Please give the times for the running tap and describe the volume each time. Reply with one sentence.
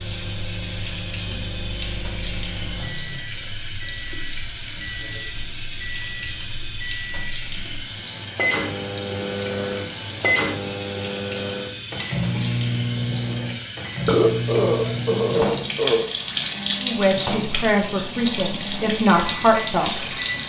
You can hear the running tap from 0.0 to 20.4 s, at a steady volume.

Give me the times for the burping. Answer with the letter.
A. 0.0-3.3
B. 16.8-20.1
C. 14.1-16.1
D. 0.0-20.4
C.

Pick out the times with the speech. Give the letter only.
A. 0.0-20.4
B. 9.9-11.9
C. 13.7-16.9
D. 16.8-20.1
D.